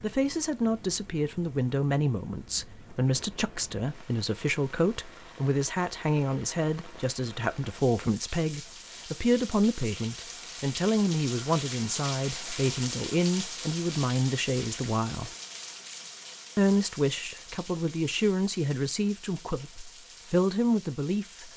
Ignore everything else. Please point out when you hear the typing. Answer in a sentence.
The typing can't be heard in this clip.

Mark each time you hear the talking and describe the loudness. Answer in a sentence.
The talking can be heard from 0.0 to 15.3 s, at a steady volume; and from 16.6 to 21.5 s, getting quieter then louder.